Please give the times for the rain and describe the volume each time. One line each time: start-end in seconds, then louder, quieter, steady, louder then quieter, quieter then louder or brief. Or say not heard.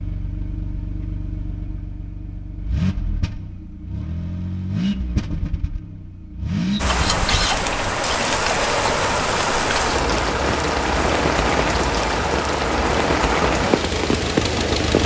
6.8-15.0 steady.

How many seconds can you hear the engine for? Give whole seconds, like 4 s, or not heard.
15 s.